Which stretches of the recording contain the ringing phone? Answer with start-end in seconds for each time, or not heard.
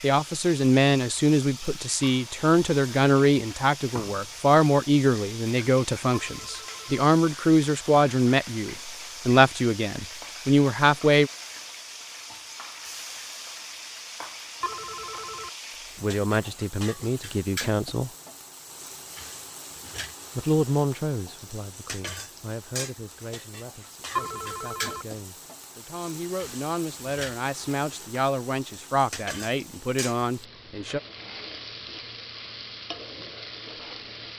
6.1-7.0, 14.6-15.5, 24.1-25.1.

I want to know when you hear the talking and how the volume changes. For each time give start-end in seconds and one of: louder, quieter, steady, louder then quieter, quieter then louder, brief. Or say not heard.
0.0-11.3 steady
15.9-18.1 brief
20.4-31.0 quieter then louder.